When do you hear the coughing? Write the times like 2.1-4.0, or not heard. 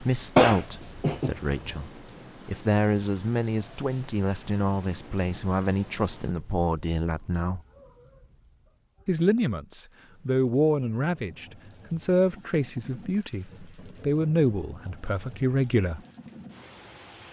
0.3-1.8.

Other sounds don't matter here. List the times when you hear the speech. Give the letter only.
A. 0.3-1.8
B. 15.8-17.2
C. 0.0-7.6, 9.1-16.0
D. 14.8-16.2
C.